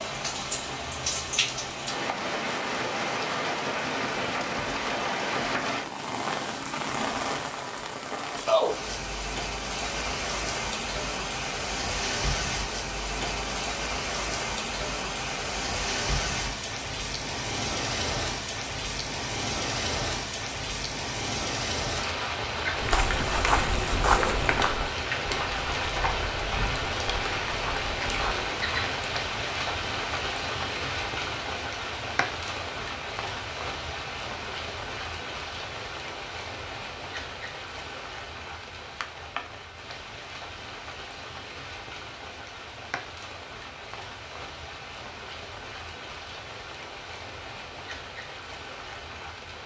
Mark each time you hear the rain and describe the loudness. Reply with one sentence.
The rain can be heard from 0.0 to 49.6 s, getting quieter.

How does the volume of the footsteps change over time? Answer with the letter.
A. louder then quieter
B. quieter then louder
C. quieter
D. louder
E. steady
C.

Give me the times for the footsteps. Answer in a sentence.
The footsteps can be heard from 22.8 to 28.4 s.